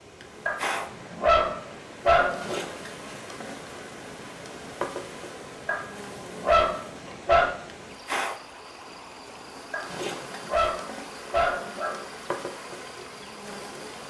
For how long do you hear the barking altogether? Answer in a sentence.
You can hear the barking for 6 seconds altogether.